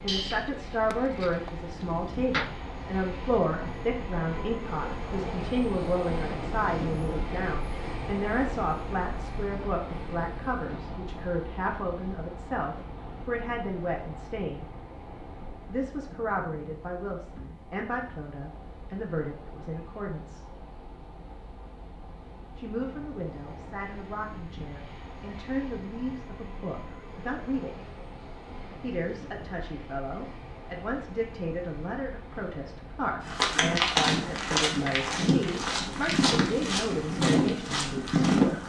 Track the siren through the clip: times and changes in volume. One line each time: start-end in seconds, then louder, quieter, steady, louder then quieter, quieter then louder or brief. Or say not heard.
not heard.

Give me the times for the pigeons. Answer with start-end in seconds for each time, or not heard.
0.1-2.5.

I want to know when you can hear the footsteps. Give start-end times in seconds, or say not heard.
33.2-38.6.